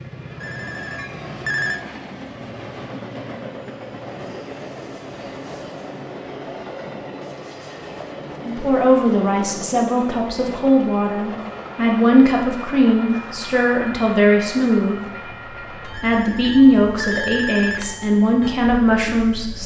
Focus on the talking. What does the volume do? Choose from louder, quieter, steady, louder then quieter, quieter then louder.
steady.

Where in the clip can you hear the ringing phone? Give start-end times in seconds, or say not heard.
0.4-1.8, 15.9-18.1.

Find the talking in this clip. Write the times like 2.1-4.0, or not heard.
8.4-15.1, 15.8-19.6.